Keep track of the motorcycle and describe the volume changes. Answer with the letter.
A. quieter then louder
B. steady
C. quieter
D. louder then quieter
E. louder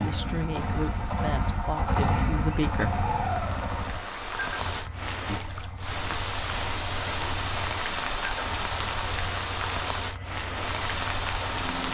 C.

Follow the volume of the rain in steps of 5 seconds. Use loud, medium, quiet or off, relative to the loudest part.
medium, loud, loud.